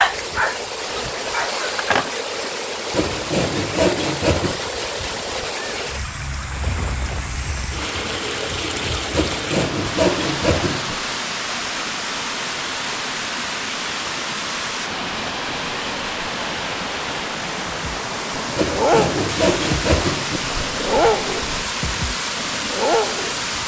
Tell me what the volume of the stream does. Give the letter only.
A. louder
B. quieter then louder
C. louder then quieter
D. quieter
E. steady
E.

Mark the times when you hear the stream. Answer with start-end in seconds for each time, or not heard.
0.0-23.6.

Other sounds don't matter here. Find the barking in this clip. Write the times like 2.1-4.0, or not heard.
0.0-2.1, 17.7-23.6.